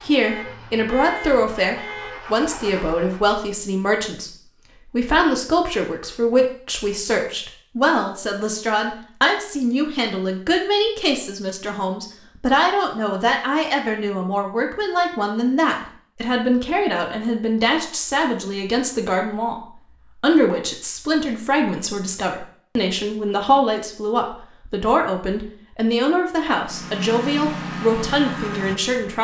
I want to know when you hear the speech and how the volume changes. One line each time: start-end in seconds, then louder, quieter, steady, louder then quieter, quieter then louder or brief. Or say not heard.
0.0-29.1 steady.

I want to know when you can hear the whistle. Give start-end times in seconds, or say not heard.
not heard.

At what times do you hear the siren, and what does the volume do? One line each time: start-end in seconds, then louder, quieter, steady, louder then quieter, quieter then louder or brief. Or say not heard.
not heard.